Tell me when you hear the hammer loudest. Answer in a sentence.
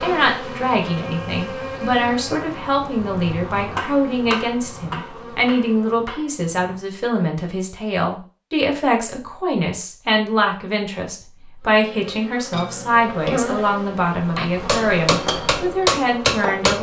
The volume of the hammer peaks at 16 seconds.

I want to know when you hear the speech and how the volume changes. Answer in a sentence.
You can hear the speech from 0.0 to 16.7 s, at a steady volume.